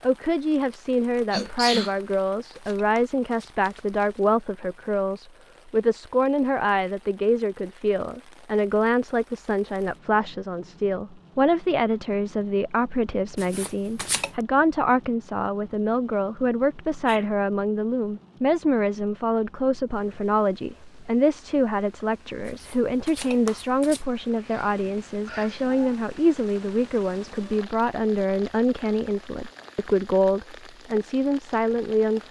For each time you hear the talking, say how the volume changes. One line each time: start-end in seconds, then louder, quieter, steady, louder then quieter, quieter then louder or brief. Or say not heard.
0.0-32.2 steady.